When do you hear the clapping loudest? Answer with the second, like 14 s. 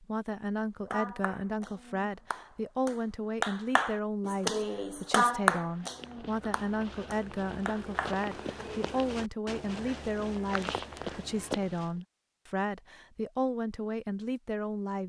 5 s.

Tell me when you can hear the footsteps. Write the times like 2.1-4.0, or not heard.
5.5-11.9.